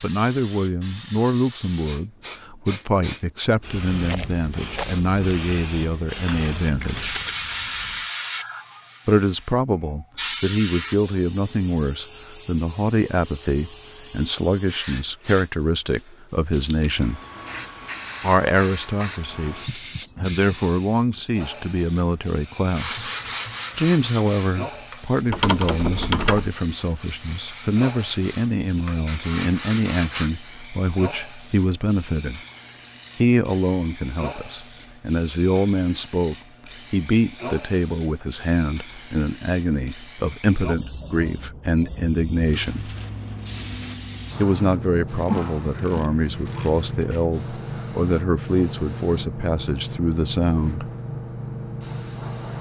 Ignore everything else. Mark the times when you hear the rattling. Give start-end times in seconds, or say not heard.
4.0-5.0.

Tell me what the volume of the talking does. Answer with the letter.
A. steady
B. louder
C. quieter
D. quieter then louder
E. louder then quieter
A.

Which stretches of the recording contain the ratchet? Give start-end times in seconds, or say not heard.
6.2-8.1, 25.3-26.5, 45.1-47.2.